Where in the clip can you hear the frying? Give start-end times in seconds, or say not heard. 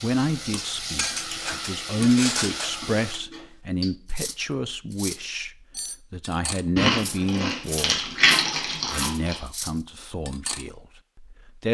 0.0-3.2.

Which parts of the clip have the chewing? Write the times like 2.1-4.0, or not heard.
1.1-3.5, 6.8-9.3.